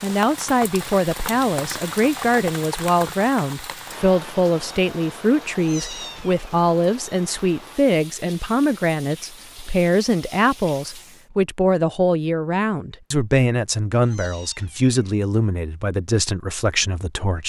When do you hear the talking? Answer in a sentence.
The talking can be heard from 0.0 to 17.4 s.